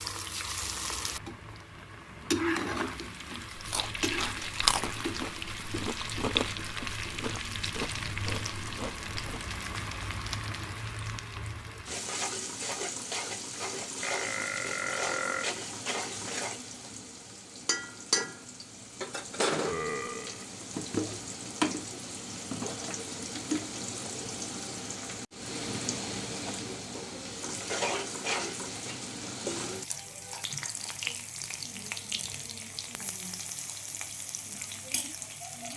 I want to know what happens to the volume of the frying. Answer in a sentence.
The loudness of the frying stays about the same.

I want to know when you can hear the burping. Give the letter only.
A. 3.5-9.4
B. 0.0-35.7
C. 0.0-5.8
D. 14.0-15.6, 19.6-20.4
D.